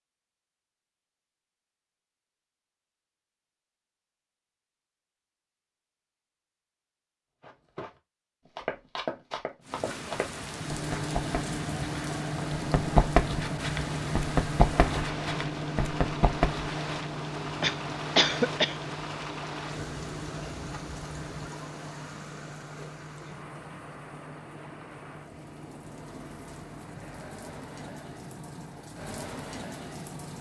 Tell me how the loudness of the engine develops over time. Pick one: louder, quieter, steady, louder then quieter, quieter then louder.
quieter.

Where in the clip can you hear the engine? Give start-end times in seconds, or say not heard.
10.3-30.3.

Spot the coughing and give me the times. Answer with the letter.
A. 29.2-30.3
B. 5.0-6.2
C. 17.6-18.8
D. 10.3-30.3
C.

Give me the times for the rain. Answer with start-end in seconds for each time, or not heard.
9.6-30.3.